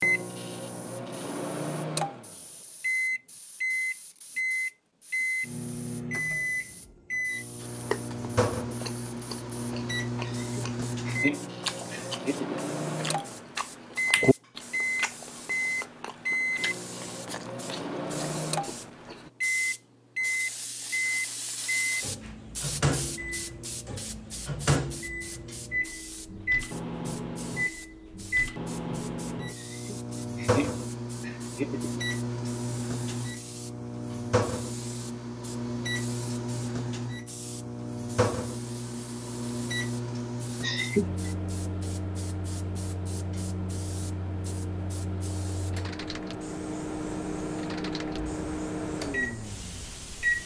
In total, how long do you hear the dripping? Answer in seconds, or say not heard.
not heard.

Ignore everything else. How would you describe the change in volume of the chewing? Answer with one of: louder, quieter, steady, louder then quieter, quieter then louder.
louder then quieter.